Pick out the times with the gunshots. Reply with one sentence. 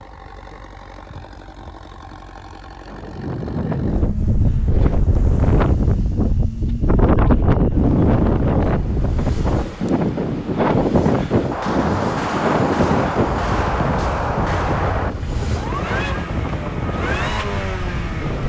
You can hear the gunshots from 11.5 to 15.2 s.